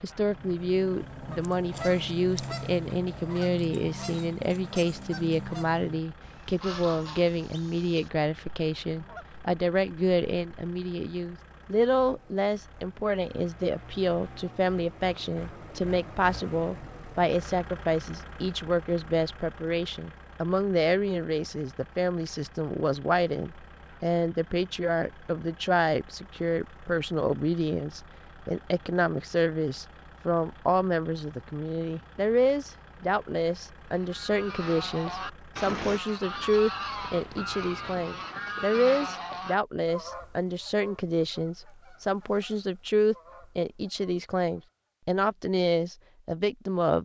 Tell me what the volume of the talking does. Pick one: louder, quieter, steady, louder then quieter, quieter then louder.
steady.